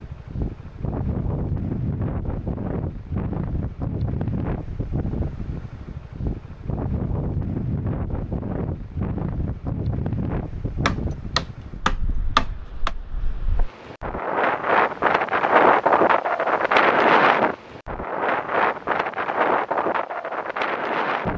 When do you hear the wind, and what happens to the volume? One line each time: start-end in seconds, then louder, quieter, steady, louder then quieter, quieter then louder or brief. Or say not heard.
0.0-21.3 louder.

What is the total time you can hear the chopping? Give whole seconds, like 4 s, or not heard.
2 s.